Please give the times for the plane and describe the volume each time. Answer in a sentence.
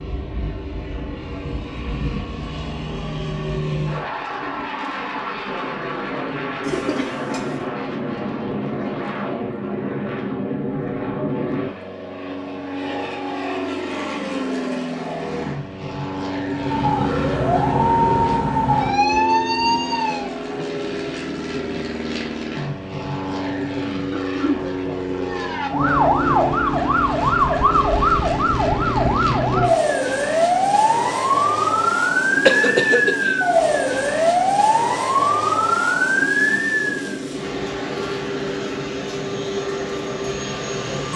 The plane can be heard from 0.0 to 41.1 s, at a steady volume.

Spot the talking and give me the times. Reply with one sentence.
The talking can't be heard in this clip.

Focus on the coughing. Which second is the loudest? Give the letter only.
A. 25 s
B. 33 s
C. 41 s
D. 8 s
B.